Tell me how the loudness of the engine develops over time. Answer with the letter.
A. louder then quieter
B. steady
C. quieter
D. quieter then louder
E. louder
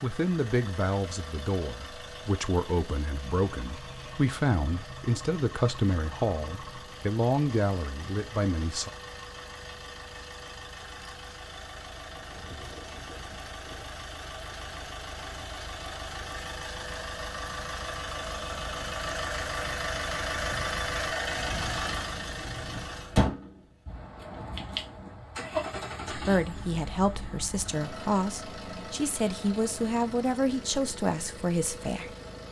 A.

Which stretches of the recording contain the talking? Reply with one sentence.
The talking can be heard from 0.0 to 8.9 s and from 26.1 to 32.1 s.